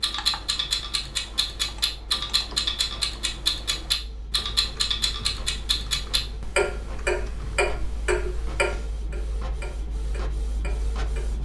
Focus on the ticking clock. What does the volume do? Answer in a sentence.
The loudness of the ticking clock goes down.